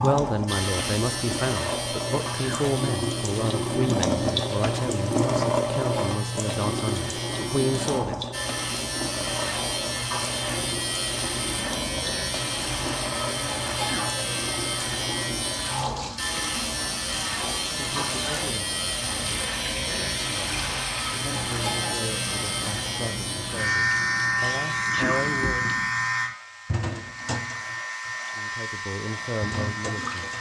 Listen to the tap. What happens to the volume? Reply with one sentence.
The loudness of the tap goes down.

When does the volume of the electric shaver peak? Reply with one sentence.
The volume of the electric shaver peaks at 24 seconds.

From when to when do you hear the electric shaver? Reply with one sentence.
You can hear the electric shaver from 0.0 to 30.3 s.